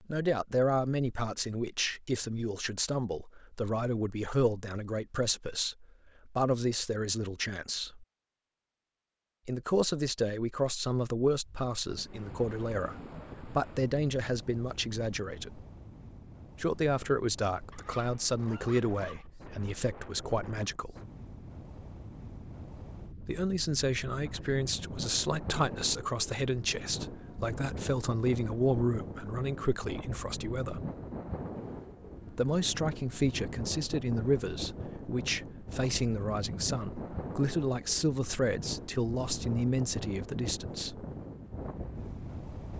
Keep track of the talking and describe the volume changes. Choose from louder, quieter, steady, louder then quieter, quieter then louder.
steady.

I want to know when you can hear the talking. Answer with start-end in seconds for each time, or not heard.
0.1-8.1, 9.4-15.6, 16.6-20.9, 23.2-30.8, 32.3-41.0.